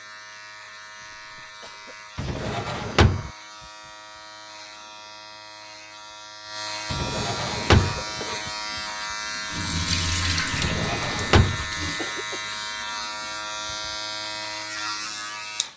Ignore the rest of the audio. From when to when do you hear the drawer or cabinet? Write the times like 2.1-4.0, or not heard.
2.1-3.3, 6.9-8.0, 10.5-11.7.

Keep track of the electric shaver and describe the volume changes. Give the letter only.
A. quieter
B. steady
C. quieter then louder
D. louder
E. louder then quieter
D.